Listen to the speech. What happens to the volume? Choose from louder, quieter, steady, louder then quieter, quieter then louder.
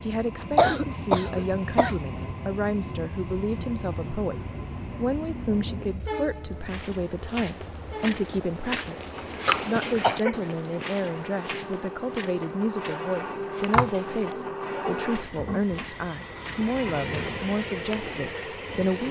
steady.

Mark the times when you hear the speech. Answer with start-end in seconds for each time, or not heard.
0.0-19.0.